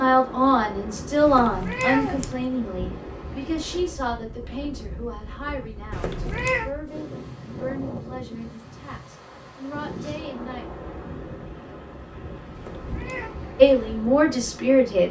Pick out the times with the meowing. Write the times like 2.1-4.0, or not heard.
1.2-2.5, 5.9-6.7, 12.6-13.3.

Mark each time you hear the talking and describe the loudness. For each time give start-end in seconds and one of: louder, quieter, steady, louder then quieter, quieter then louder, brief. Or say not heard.
0.0-10.7 quieter
13.6-15.0 brief.